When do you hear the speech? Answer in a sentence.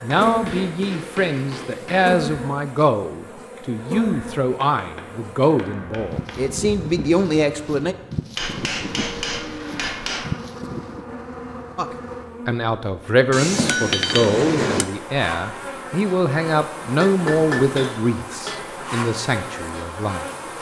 The speech can be heard from 0.0 to 8.0 s and from 11.8 to 20.5 s.